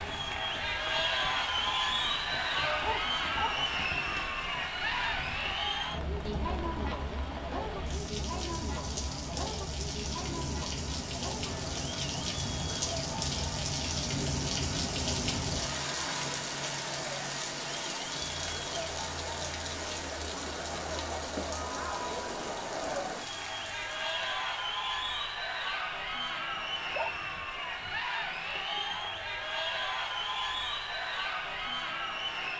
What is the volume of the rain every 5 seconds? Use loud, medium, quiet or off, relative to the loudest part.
medium, medium, loud, loud, medium, off, off.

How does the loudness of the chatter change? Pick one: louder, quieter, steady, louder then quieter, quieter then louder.
quieter then louder.